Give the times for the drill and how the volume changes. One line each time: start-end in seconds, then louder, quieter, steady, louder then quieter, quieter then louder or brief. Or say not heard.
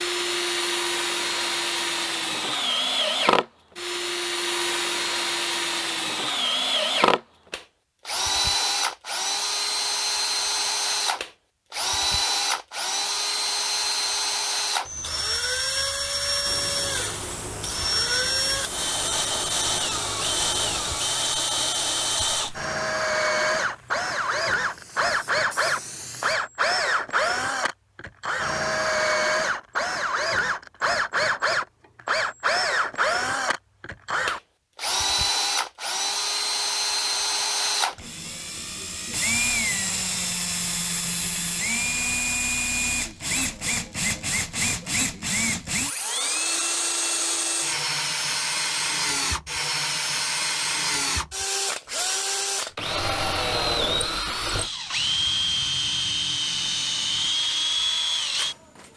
0.0-58.9 steady.